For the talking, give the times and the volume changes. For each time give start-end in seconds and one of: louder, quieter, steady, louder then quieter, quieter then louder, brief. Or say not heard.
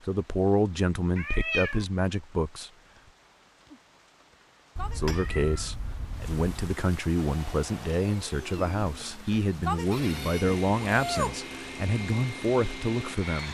0.1-2.7 brief
5.0-13.4 steady.